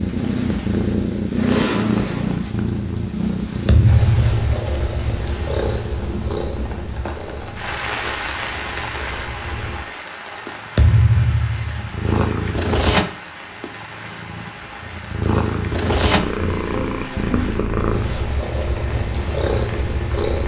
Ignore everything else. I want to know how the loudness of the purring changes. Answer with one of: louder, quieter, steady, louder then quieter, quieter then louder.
quieter then louder.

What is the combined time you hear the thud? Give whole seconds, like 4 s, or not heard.
2 s.